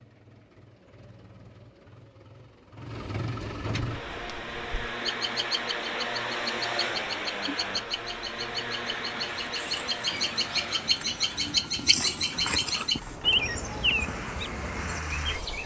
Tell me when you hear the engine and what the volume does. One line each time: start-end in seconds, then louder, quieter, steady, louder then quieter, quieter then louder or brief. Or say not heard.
0.0-15.6 louder then quieter.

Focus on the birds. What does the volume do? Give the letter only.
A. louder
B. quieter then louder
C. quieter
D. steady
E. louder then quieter
A.